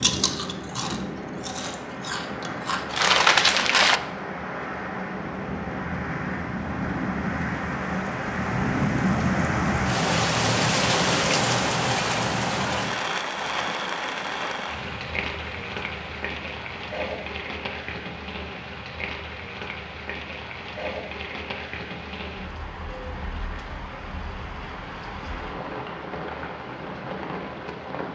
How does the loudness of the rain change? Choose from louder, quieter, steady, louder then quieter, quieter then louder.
louder then quieter.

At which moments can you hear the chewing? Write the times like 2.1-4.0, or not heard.
0.0-4.0.